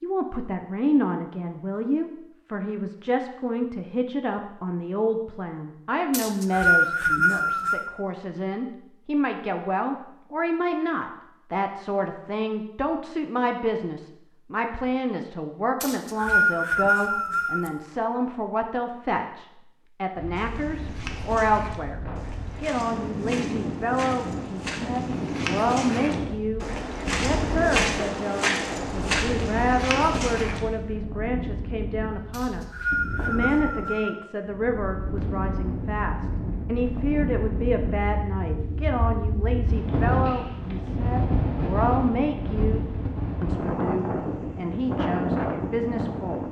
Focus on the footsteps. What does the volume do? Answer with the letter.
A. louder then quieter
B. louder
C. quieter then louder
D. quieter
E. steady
B.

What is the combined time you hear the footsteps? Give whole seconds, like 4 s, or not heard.
10 s.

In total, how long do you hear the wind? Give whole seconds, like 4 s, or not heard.
26 s.